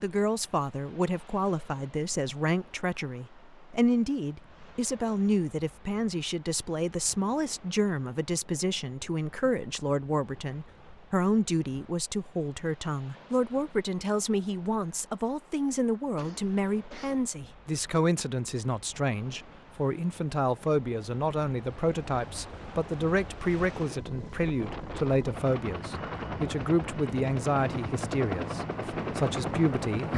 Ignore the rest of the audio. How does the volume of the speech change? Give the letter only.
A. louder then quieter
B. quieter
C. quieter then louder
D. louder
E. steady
E.